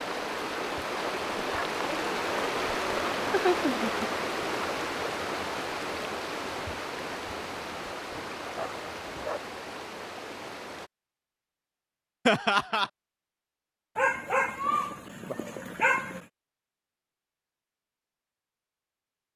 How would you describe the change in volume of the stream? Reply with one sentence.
The loudness of the stream goes down.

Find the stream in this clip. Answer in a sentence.
The stream can be heard from 0.0 to 10.9 s.